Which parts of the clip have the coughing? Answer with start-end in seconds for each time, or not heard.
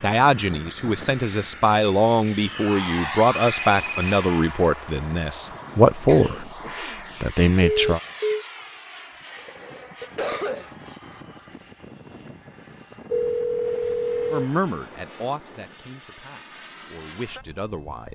6.0-7.0, 9.3-10.8.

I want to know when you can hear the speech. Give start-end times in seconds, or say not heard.
0.0-6.5, 7.2-8.0, 14.3-18.1.